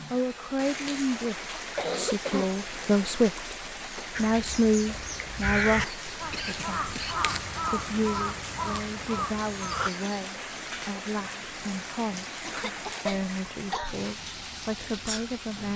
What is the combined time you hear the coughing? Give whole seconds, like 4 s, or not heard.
4 s.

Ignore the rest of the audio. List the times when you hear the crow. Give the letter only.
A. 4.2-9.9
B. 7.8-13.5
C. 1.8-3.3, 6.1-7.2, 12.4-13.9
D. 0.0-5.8
A.